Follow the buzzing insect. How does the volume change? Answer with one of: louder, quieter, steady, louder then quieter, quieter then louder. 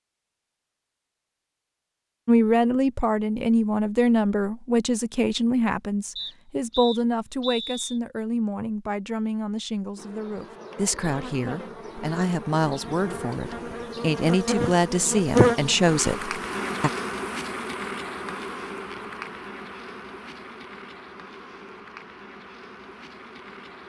louder then quieter.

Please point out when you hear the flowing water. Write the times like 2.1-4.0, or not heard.
not heard.